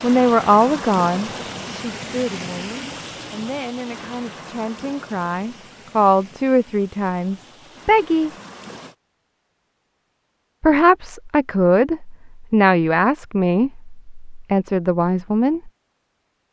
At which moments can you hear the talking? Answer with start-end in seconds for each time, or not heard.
0.0-8.3, 10.6-15.7.